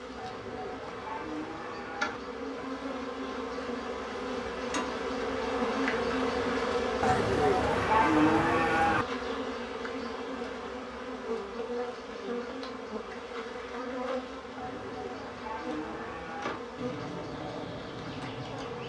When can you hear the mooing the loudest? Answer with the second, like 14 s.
8 s.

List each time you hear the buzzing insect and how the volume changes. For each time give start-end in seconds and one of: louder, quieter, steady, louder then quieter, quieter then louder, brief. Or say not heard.
0.0-18.8 louder then quieter.